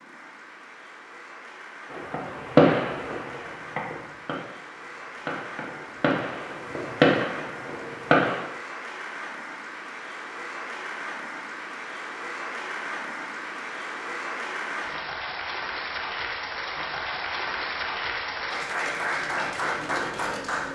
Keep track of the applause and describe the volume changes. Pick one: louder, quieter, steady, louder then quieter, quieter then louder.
louder.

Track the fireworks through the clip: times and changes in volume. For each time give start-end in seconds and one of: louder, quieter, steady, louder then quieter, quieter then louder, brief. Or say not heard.
1.9-8.4 quieter then louder.